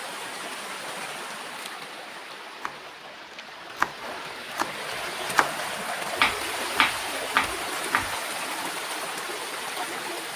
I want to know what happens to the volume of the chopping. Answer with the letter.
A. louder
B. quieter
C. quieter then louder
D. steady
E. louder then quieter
C.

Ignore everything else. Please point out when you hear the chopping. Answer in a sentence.
You can hear the chopping from 2.6 to 8.2 s.